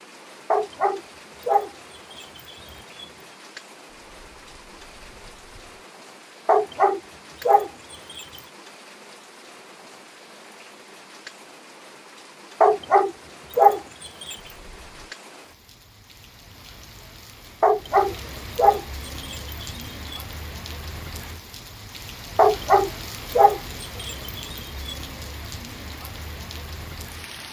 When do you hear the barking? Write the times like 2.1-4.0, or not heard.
0.5-3.2, 6.5-8.5, 12.6-14.6, 17.6-20.1, 22.4-24.9.